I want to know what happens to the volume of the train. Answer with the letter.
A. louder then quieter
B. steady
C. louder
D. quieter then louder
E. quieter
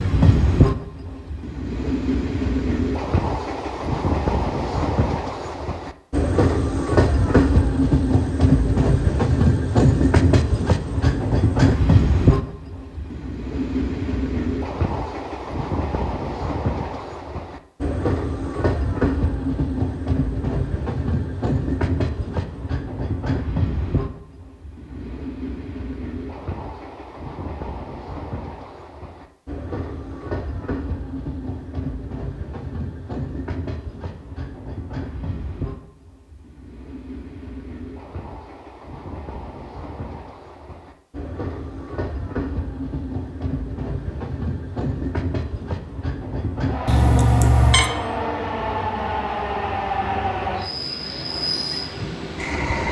D.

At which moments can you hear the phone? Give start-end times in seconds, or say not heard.
46.9-47.9.